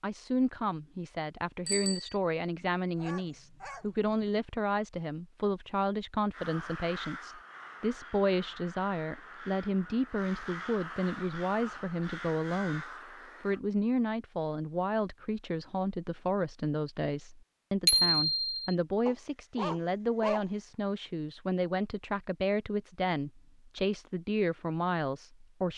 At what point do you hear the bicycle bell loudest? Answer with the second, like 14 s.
18 s.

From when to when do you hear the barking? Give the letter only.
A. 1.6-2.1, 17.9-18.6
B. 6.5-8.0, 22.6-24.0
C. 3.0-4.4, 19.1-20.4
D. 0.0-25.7
C.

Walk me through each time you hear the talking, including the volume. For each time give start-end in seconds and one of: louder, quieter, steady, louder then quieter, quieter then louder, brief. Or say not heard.
0.0-25.7 steady.